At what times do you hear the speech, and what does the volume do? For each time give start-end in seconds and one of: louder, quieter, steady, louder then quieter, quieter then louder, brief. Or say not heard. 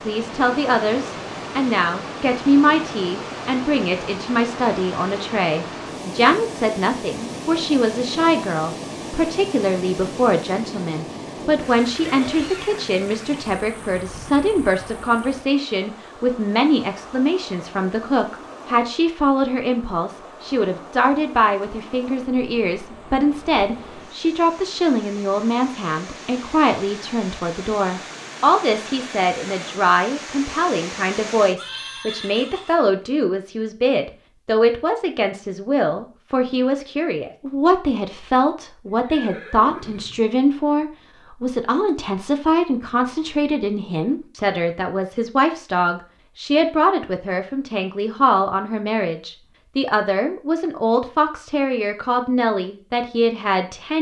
0.1-53.9 steady.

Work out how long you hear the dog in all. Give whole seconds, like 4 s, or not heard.
not heard.